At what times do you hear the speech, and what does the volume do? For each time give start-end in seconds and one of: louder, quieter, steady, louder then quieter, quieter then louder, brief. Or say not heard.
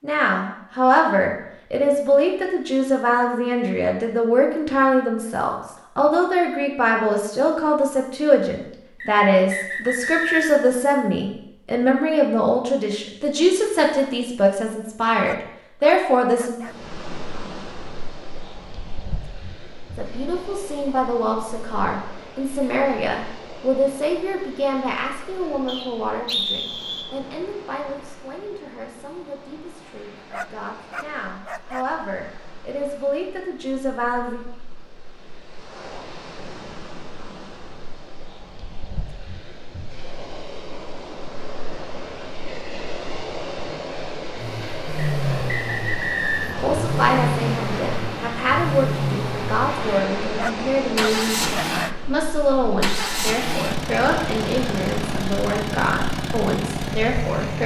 0.0-16.6 steady
19.9-34.4 quieter then louder
46.6-57.6 steady.